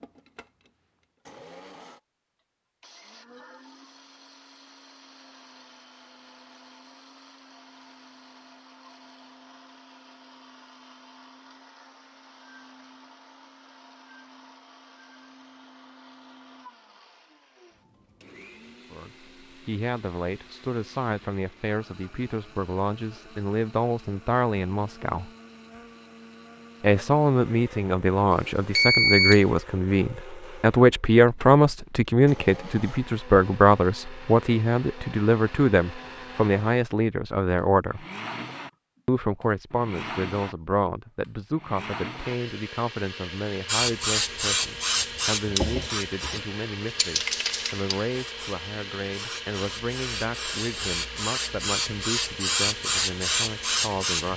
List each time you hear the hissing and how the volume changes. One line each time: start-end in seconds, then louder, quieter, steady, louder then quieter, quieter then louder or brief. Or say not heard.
43.6-54.3 quieter then louder.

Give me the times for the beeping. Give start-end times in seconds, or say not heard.
28.3-29.4.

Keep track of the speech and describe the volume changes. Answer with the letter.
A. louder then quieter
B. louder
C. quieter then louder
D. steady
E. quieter
A.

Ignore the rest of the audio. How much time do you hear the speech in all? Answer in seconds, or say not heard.
33 s.